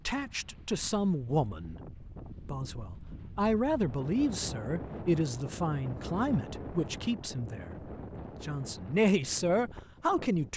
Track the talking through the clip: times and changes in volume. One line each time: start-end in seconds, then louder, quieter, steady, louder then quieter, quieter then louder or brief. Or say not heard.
0.1-1.8 brief
2.5-10.5 quieter then louder.